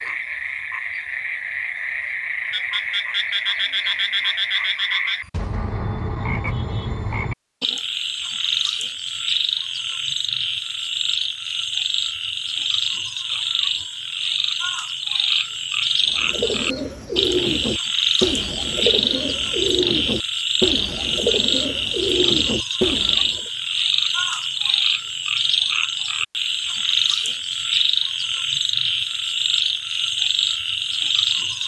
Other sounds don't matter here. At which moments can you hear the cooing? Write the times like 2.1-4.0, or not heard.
16.1-23.5.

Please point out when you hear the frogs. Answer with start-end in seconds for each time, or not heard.
0.0-31.6.